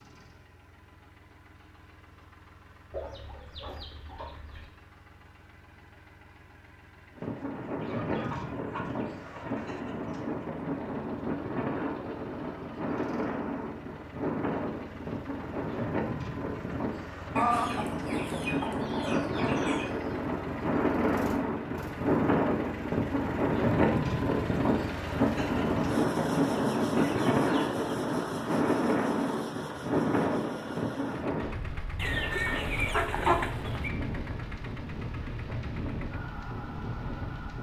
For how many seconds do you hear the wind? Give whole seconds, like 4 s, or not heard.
30 s.